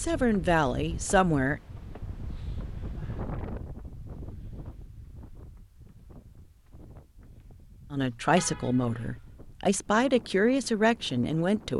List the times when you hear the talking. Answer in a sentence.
The talking can be heard from 0.0 to 1.6 s and from 7.9 to 11.7 s.